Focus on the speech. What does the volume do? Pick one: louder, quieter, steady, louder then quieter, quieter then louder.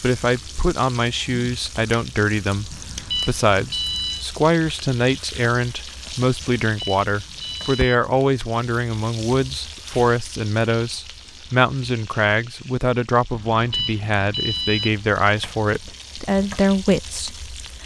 steady.